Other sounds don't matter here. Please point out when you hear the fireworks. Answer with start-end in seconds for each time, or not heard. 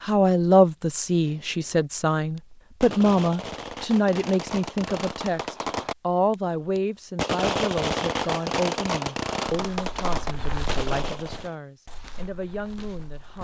1.2-11.6.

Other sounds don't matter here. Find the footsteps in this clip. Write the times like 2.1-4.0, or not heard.
9.4-13.3.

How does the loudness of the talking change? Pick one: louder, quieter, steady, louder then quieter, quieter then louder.
quieter.